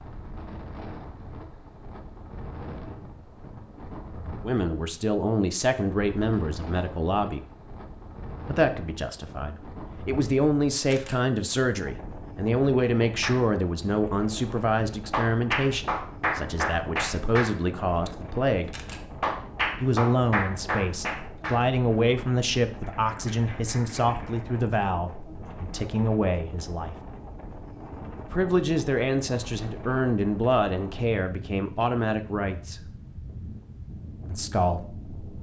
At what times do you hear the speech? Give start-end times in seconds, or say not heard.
4.4-7.5, 8.4-18.8, 19.8-26.9, 28.1-32.9, 34.2-35.0.